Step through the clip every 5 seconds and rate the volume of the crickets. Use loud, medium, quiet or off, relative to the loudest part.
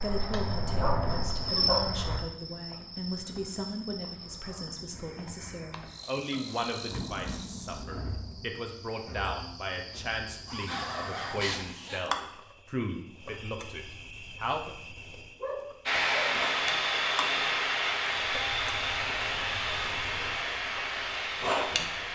loud, medium, medium, medium, loud.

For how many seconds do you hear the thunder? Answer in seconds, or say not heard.
2 s.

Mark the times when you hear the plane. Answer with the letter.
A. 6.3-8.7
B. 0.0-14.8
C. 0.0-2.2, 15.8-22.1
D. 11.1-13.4
C.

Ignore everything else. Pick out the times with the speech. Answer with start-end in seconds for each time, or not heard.
0.0-14.8.